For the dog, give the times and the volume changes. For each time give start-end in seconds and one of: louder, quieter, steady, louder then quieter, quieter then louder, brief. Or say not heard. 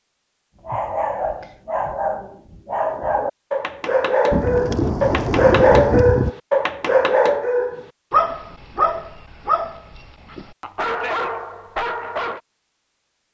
0.7-12.4 louder then quieter.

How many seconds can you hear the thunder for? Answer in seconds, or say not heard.
2 s.